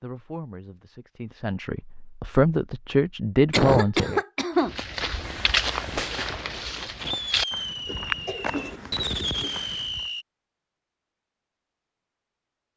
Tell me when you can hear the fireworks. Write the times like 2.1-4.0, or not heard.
5.2-10.2.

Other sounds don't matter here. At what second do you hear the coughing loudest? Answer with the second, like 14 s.
4 s.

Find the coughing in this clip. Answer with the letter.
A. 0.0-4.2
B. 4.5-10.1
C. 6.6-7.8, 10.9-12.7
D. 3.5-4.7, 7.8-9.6
D.